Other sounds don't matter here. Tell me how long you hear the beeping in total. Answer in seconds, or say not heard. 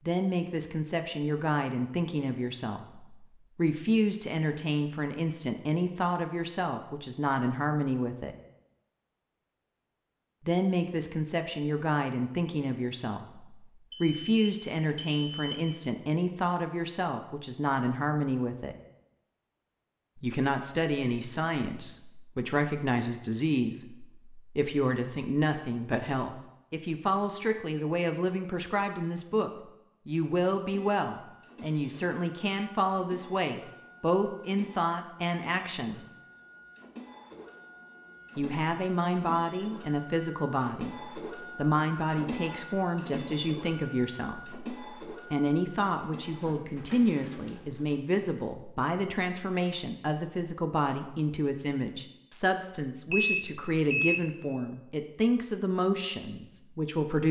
3 s.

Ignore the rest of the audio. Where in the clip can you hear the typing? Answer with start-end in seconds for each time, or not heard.
not heard.